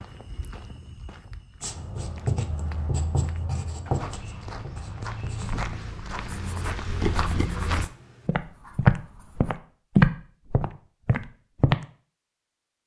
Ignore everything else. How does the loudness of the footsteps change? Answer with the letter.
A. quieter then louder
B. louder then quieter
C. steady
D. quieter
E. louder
E.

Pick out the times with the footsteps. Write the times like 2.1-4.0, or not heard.
0.0-11.8.